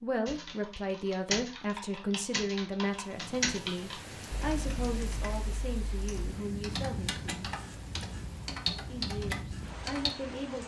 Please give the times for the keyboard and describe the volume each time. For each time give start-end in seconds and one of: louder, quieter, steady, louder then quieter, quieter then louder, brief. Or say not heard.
0.2-10.1 quieter then louder.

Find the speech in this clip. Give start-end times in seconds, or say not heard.
0.0-7.5, 8.9-10.6.